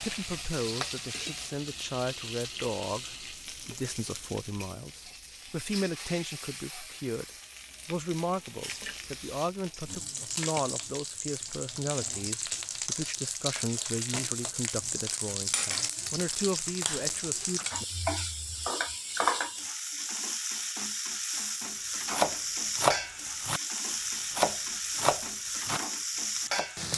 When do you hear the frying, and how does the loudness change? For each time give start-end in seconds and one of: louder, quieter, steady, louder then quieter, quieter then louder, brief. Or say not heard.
0.0-26.9 louder.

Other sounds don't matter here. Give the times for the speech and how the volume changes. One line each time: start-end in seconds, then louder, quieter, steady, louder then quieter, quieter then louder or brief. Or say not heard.
0.0-17.6 steady.